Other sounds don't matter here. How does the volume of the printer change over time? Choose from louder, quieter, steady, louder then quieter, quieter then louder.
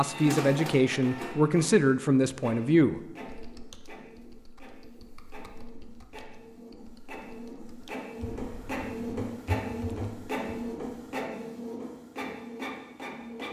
quieter then louder.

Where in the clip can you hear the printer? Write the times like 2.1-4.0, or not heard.
0.0-13.4.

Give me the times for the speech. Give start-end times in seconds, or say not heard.
0.0-3.0.